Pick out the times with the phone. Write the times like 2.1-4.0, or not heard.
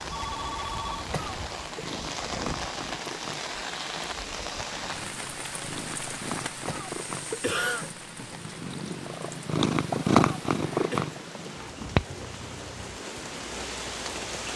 0.1-1.1.